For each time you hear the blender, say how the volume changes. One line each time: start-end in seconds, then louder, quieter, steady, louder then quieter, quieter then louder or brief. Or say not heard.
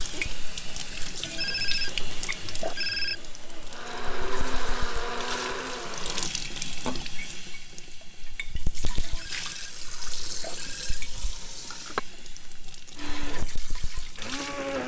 0.0-6.3 louder
12.9-14.8 brief.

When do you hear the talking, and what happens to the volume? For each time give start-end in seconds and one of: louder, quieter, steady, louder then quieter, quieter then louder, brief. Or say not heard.
not heard.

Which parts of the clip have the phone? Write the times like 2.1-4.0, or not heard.
1.2-3.2, 9.1-11.0.